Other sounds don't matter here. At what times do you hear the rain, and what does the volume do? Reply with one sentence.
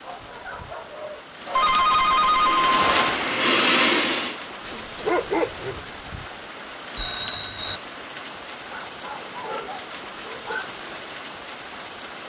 You can hear the rain from 0.0 to 12.2 s, getting louder then quieter.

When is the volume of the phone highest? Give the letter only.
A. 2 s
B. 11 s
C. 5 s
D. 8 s
A.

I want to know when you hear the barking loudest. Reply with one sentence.
The loudest moment of the barking is at 5 seconds.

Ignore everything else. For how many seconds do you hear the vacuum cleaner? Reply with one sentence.
The vacuum cleaner can be heard for 2 seconds in total.